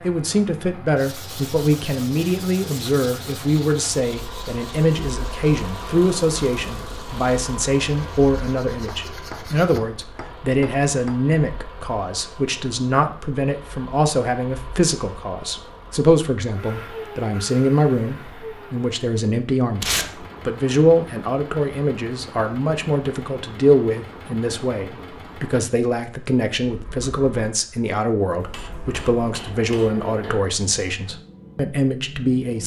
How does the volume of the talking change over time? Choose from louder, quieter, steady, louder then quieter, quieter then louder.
steady.